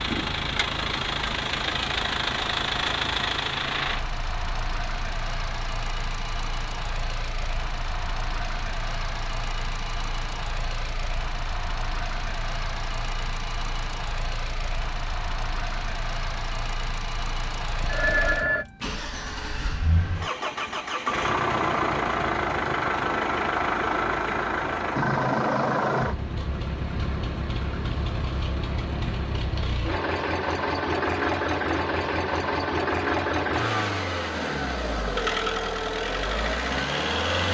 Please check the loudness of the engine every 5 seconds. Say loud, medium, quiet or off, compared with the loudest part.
loud, medium, medium, medium, loud, loud, loud, loud.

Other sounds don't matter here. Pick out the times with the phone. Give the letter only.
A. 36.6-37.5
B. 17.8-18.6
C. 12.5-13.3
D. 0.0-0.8
B.